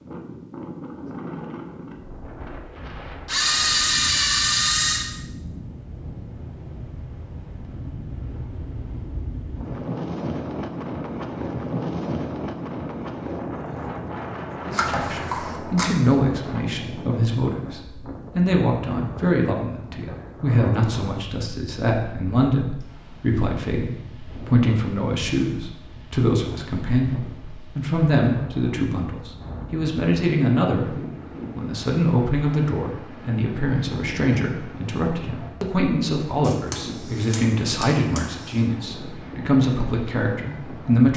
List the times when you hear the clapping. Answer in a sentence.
The clapping can't be heard in this clip.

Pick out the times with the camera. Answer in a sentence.
The camera can be heard from 3.2 to 5.0 s, from 14.8 to 15.8 s and from 36.4 to 38.6 s.